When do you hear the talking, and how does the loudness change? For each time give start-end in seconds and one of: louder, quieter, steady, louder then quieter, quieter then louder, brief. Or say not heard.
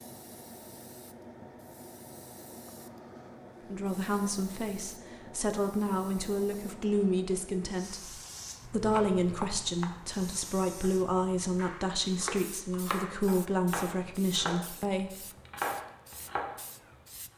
3.7-15.1 steady.